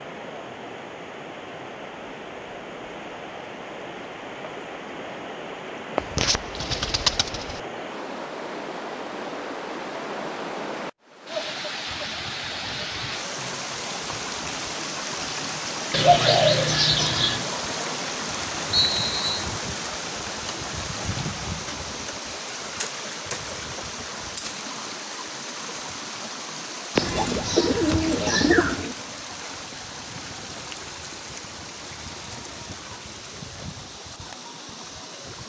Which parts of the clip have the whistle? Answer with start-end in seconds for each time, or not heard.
18.7-19.4.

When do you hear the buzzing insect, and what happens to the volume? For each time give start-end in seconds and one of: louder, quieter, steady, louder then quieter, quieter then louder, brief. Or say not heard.
not heard.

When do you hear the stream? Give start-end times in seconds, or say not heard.
0.0-35.4.